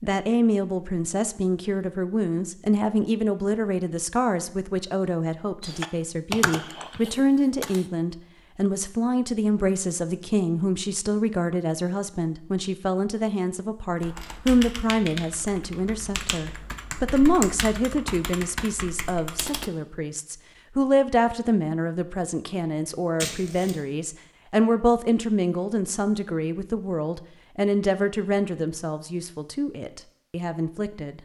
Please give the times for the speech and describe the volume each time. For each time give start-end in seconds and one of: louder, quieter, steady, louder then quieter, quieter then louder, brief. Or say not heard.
0.0-31.2 steady.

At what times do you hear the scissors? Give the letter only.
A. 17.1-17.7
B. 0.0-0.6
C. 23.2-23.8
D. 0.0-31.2
C.